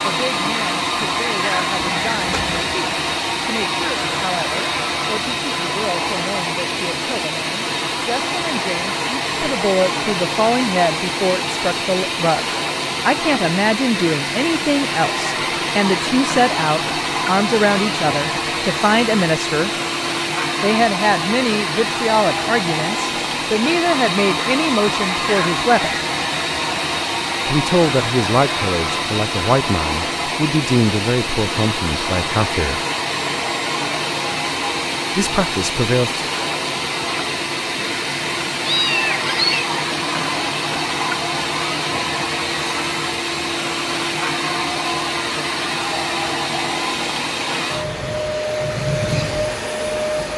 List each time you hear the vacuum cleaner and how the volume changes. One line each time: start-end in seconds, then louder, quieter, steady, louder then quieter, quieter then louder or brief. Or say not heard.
0.0-50.3 steady.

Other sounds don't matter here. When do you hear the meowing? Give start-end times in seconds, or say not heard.
1.8-2.6, 38.6-39.6.